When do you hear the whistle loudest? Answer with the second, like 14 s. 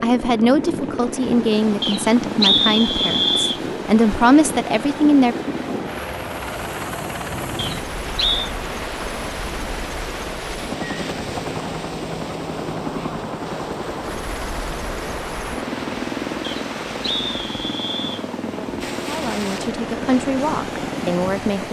3 s.